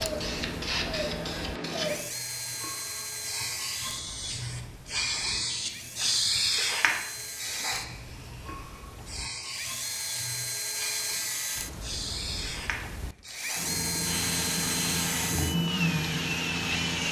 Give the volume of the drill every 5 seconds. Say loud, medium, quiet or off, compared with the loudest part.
medium, medium, loud, loud.